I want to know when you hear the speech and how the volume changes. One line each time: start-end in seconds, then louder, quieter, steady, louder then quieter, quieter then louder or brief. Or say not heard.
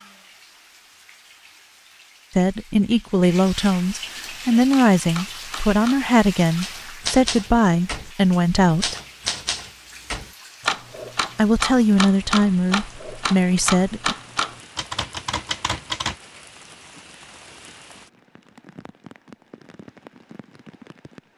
2.4-8.9 steady
11.3-14.2 brief.